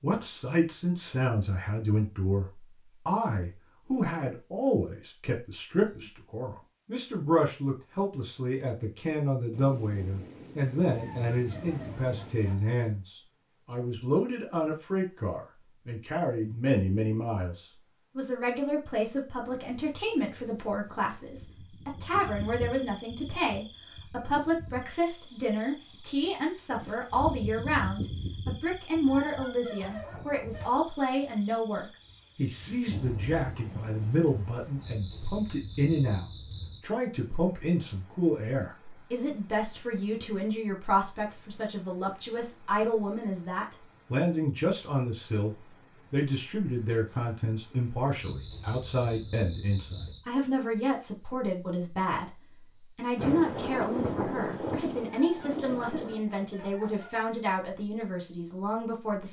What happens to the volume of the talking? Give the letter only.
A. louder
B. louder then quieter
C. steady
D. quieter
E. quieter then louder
C.